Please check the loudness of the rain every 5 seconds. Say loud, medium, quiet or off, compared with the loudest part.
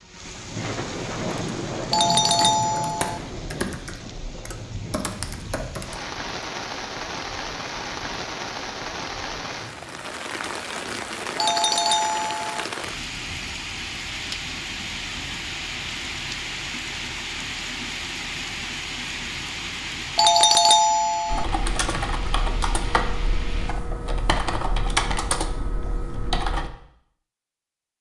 loud, loud, loud, loud, medium, off.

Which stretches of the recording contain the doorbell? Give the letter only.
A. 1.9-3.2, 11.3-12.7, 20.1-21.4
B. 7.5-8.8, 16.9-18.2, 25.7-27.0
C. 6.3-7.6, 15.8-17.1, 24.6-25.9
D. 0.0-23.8
A.